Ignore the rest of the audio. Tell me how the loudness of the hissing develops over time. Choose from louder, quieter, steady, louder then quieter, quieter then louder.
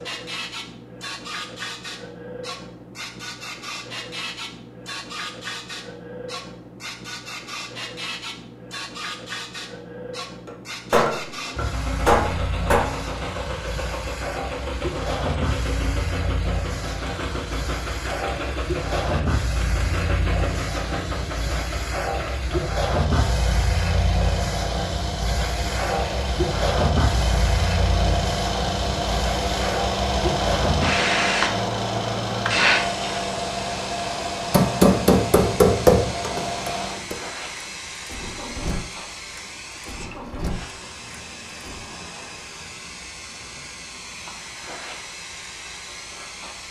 louder then quieter.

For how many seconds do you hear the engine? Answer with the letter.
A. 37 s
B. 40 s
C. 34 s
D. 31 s
D.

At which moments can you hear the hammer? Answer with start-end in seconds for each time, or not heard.
10.4-12.8, 34.5-37.1.